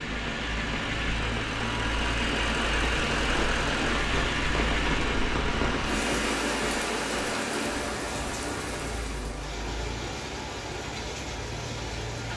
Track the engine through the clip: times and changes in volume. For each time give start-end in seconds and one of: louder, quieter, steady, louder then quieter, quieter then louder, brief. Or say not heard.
0.0-12.3 quieter.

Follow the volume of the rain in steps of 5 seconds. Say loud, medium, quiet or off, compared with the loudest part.
loud, loud, medium.